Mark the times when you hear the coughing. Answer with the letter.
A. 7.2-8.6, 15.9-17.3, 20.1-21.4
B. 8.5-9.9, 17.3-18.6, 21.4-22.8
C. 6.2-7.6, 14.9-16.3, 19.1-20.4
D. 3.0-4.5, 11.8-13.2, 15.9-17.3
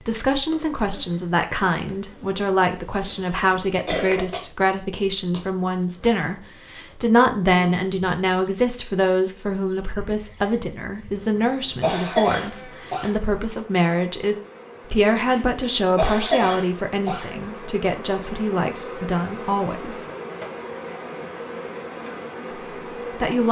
D.